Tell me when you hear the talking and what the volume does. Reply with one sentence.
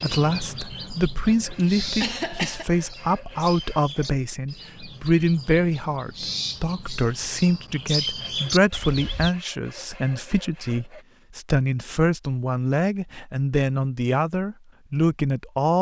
You can hear the talking from 0.0 to 15.7 s, at a steady volume.